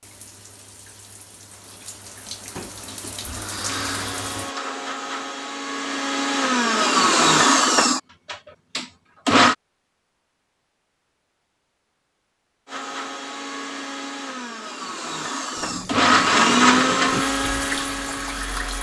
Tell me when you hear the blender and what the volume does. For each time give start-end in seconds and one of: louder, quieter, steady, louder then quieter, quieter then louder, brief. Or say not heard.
3.6-9.6 louder then quieter
12.7-18.7 louder then quieter.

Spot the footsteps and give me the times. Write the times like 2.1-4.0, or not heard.
not heard.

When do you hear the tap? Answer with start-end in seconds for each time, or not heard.
0.0-4.5, 15.6-18.7.